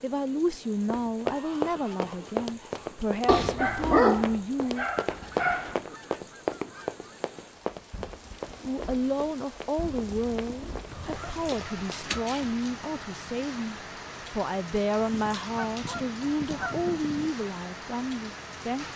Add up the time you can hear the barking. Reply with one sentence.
The barking can be heard for 4 seconds in total.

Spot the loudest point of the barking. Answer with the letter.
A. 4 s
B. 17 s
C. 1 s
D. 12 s
A.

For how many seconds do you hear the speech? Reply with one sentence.
You can hear the speech for 15 seconds altogether.